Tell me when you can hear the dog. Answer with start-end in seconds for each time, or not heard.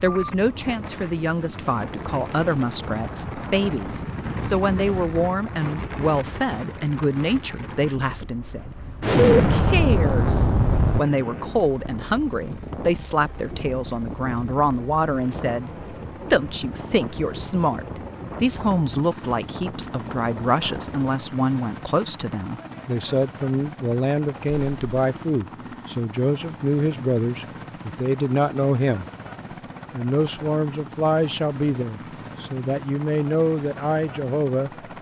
not heard.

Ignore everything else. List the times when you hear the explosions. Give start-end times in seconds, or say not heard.
9.0-11.0, 24.4-24.9.